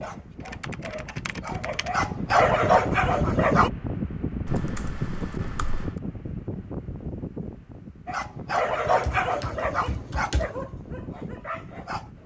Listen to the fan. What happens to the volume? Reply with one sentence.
The loudness of the fan goes up, then down.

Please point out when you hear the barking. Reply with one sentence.
The barking can be heard from 0.0 to 3.7 s and from 8.1 to 12.2 s.